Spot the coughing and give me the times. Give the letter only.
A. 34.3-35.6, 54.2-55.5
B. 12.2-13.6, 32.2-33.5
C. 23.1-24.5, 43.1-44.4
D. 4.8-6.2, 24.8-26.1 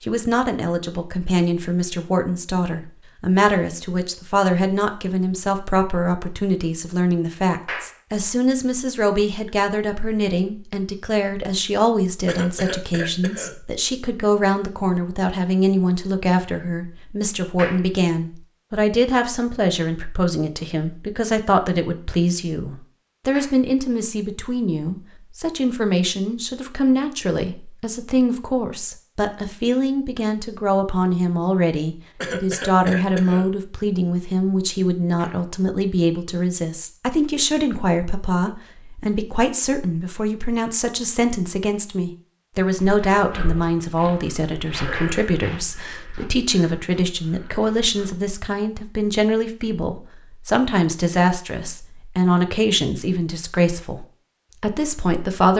B.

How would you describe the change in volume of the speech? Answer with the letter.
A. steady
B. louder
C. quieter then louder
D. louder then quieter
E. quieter
A.